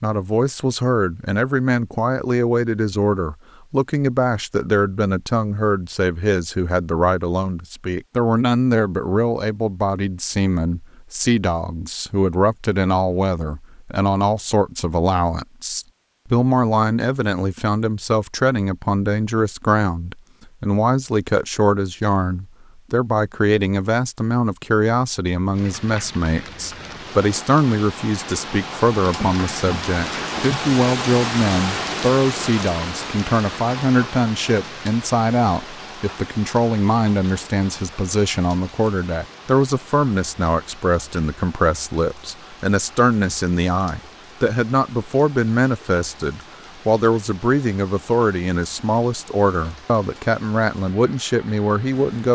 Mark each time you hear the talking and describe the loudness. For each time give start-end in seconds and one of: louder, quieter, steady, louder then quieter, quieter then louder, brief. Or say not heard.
0.0-52.2 steady.